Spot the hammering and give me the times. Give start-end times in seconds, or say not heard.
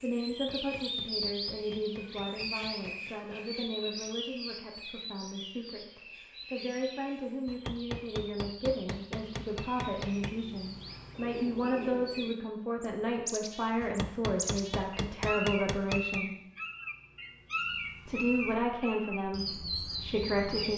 0.3-3.1, 7.5-10.3, 13.8-16.2.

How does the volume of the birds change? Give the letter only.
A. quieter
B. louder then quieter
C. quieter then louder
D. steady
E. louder
C.